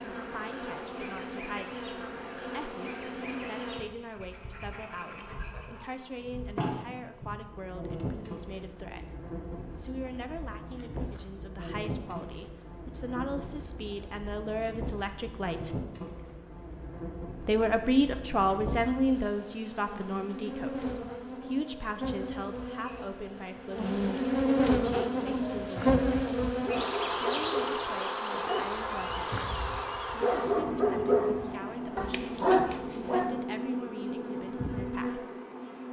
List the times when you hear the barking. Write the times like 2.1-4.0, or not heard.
24.9-33.4.